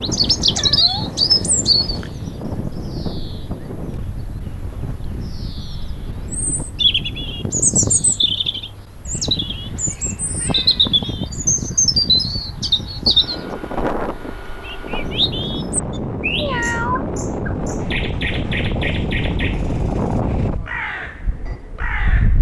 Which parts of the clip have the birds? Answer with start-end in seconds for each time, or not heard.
0.0-22.3.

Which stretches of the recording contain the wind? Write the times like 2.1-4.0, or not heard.
0.0-22.3.